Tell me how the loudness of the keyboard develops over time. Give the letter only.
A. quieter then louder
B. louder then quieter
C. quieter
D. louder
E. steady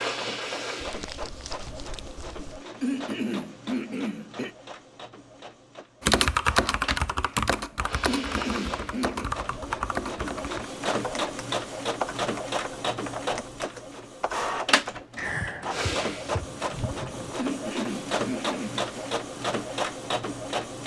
C.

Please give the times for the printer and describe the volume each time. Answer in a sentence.
The printer can be heard from 0.0 to 20.8 s, getting louder.